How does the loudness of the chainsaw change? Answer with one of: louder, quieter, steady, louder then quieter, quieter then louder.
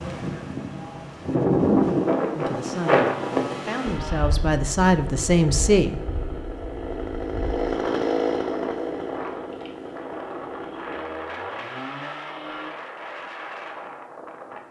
louder then quieter.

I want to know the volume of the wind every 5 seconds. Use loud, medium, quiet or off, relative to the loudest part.
loud, quiet, quiet.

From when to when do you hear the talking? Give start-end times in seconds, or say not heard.
2.4-6.0.